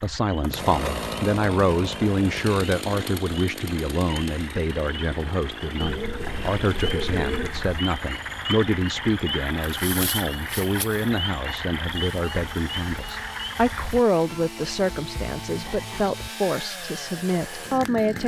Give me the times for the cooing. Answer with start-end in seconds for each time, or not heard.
5.8-7.8.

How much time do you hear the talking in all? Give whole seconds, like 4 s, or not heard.
18 s.